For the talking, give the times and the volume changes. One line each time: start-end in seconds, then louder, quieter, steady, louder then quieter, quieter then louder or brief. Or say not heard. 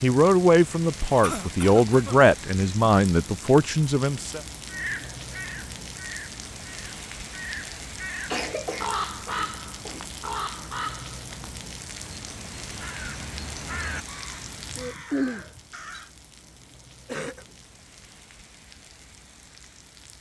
0.0-4.4 steady.